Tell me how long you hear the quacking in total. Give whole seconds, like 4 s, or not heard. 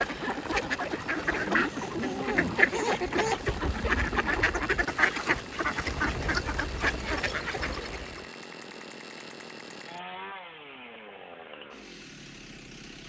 8 s.